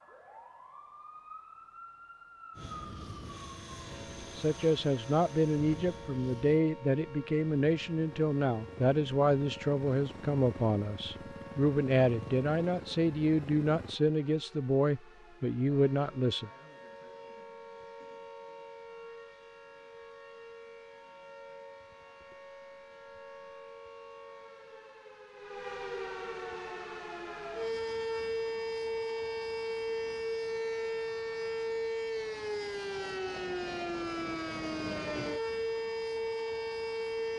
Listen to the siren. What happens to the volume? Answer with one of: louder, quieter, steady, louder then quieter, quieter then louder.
louder.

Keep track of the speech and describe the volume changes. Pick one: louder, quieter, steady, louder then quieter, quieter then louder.
steady.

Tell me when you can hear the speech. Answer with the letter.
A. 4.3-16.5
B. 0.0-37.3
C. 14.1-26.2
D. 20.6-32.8
A.